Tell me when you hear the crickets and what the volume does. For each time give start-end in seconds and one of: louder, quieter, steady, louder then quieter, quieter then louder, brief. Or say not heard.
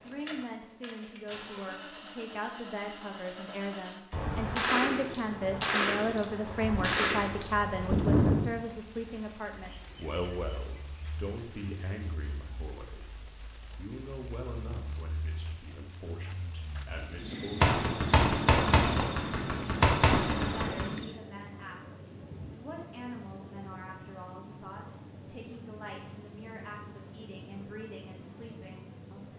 6.5-29.3 steady.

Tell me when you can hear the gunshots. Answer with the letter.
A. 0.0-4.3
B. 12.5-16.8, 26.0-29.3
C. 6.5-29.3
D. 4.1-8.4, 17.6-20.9
D.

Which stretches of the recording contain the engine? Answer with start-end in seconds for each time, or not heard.
0.0-4.3.